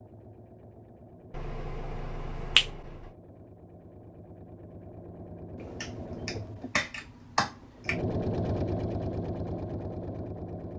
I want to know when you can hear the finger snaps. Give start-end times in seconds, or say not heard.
1.3-3.0, 5.6-8.0.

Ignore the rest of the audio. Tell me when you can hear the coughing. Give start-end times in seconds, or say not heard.
not heard.